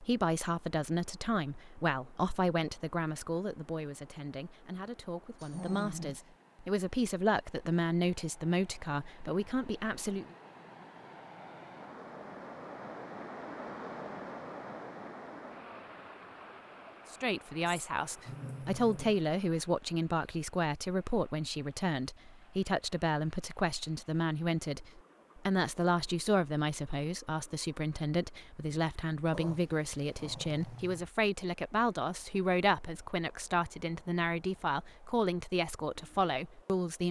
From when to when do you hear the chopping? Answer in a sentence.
The chopping can't be heard in this clip.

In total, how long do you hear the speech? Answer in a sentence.
You can hear the speech for 30 seconds altogether.